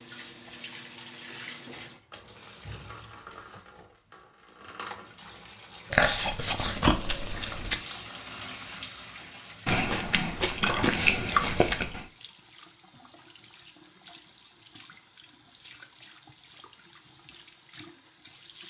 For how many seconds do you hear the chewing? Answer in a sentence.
The chewing can be heard for 4 seconds in total.